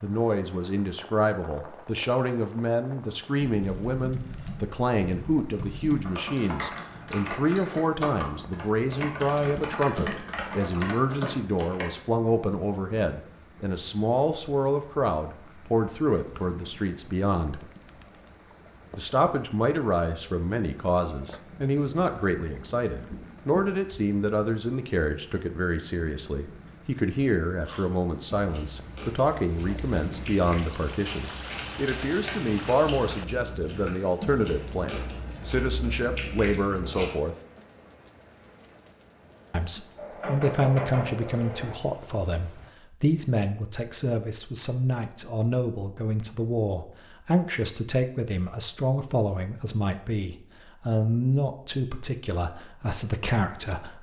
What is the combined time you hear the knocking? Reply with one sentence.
You can hear the knocking for 2 seconds altogether.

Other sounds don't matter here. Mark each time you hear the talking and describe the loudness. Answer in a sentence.
The talking can be heard from 0.0 to 17.6 s, at a steady volume; from 18.9 to 37.4 s, at a steady volume; and from 39.5 to 53.9 s, at a steady volume.